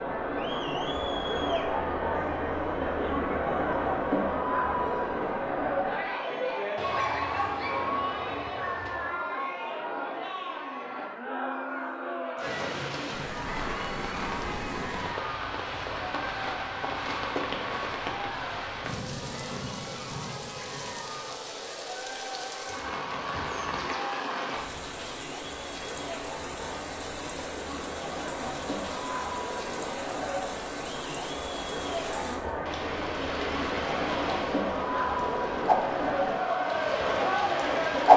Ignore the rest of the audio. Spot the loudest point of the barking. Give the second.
7 s.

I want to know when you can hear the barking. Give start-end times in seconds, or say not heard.
6.8-9.2.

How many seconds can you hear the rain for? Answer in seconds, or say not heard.
26 s.